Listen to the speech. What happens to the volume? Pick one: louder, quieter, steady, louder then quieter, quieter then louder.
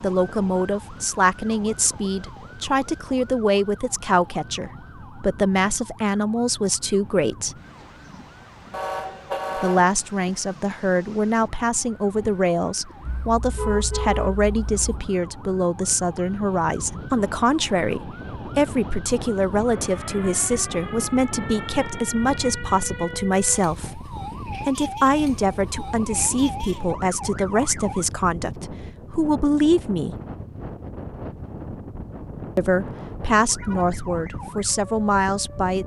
steady.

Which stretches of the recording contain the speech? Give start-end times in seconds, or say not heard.
0.0-7.5, 9.6-30.1, 32.5-35.8.